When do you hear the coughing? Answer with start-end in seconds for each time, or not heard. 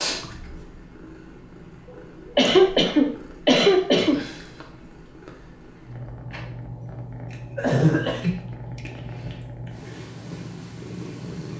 1.9-4.2, 7.3-9.3.